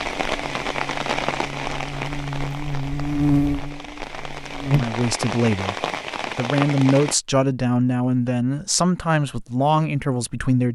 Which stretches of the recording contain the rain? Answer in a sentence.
You can hear the rain from 0.0 to 7.2 s.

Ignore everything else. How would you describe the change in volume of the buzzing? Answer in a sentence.
The volume of the buzzing goes up, then down.